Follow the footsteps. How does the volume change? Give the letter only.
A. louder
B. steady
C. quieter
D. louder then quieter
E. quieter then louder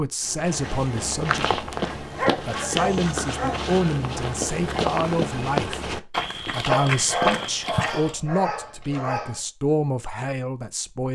B.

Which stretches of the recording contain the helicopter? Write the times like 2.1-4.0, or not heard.
not heard.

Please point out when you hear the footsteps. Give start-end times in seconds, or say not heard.
0.2-8.2.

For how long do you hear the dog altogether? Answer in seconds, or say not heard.
4 s.